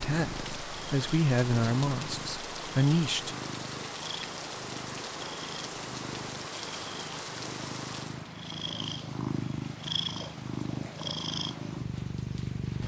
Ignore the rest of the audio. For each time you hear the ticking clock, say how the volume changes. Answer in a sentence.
The ticking clock can't be heard in this clip.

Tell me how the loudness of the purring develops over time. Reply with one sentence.
The volume of the purring goes up.